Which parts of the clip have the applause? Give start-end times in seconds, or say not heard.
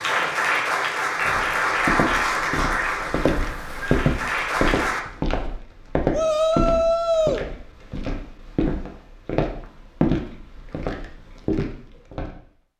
0.0-5.0.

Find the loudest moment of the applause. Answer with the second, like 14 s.
2 s.